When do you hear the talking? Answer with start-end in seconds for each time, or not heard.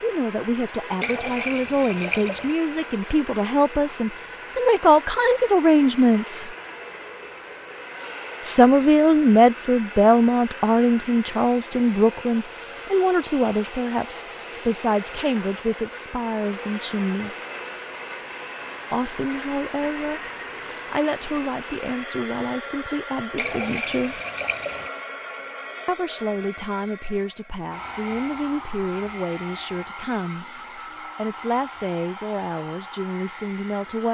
0.0-6.5, 8.4-17.4, 18.9-24.2, 25.9-34.0.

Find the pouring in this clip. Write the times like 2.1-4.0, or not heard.
1.0-2.5, 23.4-24.9.